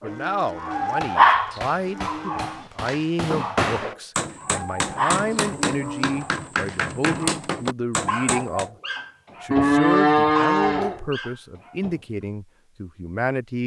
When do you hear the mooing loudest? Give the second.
10 s.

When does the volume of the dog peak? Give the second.
1 s.